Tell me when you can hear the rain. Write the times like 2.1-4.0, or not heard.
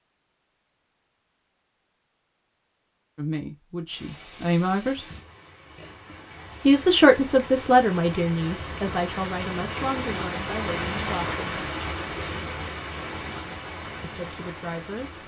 3.9-15.2.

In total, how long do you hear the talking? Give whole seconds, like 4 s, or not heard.
8 s.